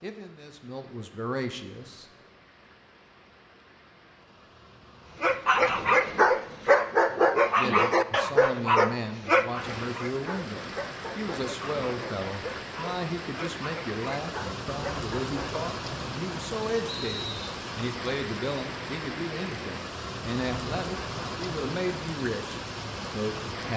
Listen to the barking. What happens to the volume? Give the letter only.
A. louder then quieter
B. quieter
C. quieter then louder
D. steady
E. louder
B.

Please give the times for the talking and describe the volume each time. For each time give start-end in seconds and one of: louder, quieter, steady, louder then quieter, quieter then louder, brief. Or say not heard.
0.0-2.0 brief
7.5-23.7 steady.